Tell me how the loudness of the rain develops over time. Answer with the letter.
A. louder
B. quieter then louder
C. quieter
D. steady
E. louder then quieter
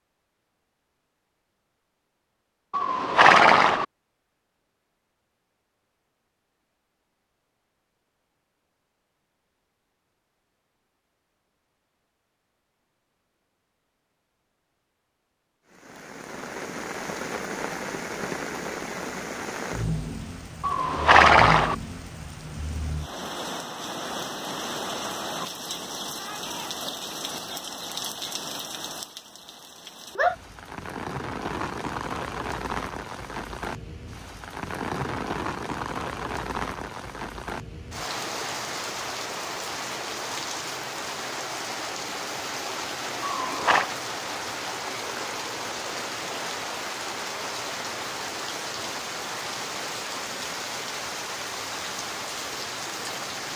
D.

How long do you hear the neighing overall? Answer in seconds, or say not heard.
3 s.